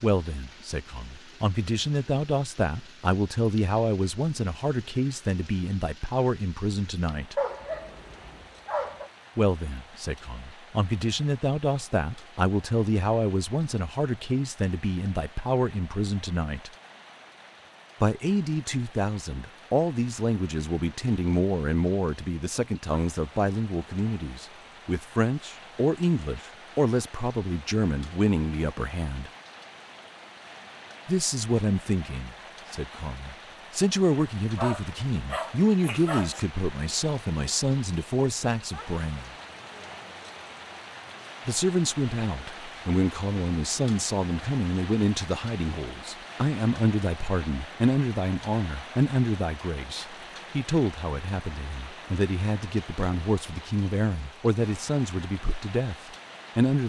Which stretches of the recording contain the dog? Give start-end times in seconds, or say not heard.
7.3-9.1, 34.5-36.4.